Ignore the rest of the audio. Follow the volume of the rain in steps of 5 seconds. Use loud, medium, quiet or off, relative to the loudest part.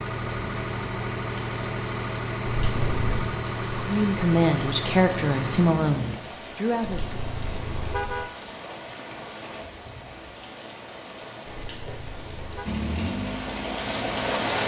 medium, medium, loud.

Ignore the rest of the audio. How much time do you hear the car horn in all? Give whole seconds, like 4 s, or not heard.
4 s.